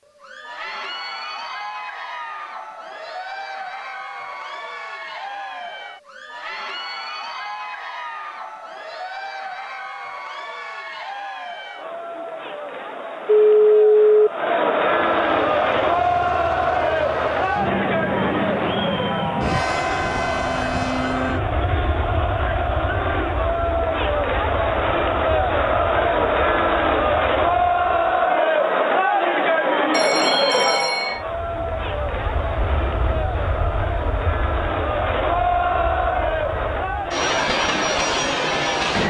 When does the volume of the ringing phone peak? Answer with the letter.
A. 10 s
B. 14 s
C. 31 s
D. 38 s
B.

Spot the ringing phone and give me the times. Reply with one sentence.
The ringing phone can be heard from 13.4 to 14.3 s and from 29.9 to 31.2 s.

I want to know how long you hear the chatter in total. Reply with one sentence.
You can hear the chatter for 39 seconds altogether.